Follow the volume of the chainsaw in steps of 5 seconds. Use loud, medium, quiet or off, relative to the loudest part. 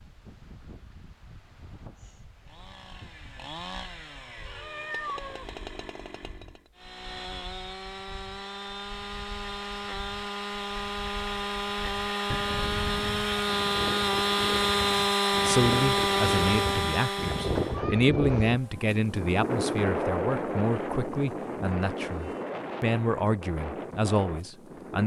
quiet, quiet, loud, loud, off.